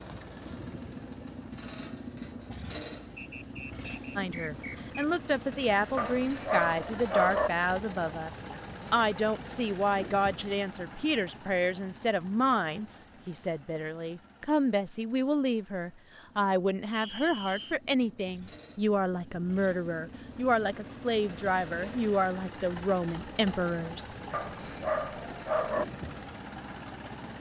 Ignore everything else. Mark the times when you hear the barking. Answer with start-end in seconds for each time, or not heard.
6.0-7.5, 24.3-25.9.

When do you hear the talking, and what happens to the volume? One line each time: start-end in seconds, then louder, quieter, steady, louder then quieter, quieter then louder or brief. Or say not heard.
4.2-24.1 steady.